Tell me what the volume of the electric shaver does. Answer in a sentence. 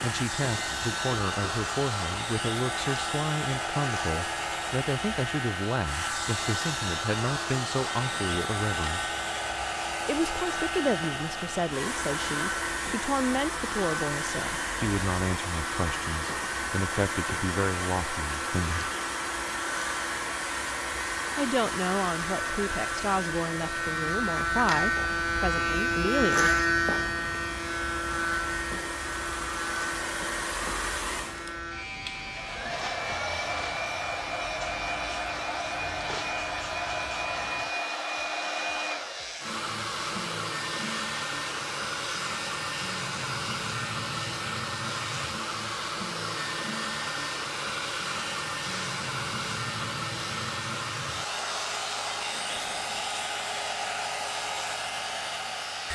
The loudness of the electric shaver goes up, then down.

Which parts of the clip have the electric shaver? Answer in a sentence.
You can hear the electric shaver from 0.0 to 55.9 s.